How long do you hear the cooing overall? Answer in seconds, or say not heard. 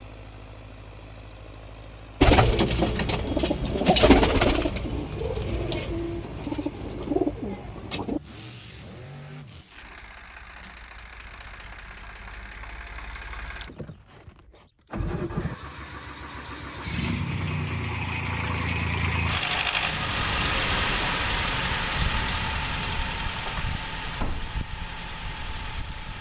6 s.